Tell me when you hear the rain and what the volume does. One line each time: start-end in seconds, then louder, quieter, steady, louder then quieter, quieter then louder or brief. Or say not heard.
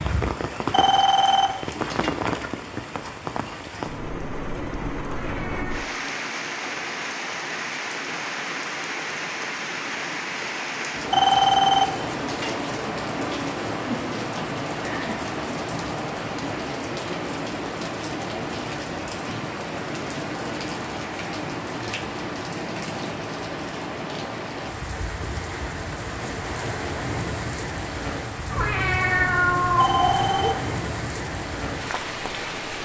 0.0-32.8 steady.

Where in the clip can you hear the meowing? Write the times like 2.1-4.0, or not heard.
5.0-5.8, 28.5-30.5.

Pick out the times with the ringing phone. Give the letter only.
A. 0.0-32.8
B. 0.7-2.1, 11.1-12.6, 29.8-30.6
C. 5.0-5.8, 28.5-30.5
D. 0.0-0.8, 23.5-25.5
B.